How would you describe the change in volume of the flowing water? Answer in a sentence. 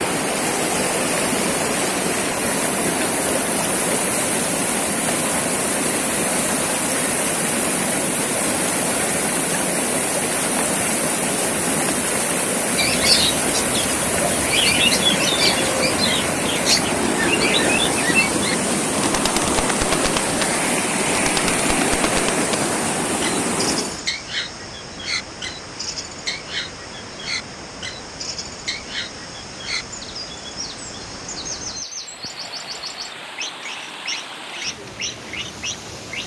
The loudness of the flowing water goes down.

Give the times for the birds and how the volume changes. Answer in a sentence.
The birds can be heard from 12.8 to 36.2 s, getting quieter.